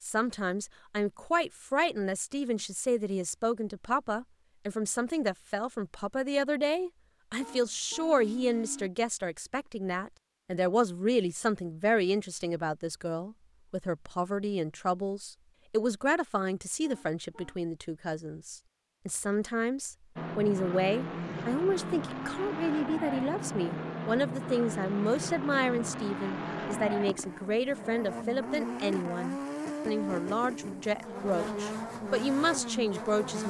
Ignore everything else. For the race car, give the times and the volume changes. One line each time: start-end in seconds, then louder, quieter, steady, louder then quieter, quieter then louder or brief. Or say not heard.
20.1-33.4 steady.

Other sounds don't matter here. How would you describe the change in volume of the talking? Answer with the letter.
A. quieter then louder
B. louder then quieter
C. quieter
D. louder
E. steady
E.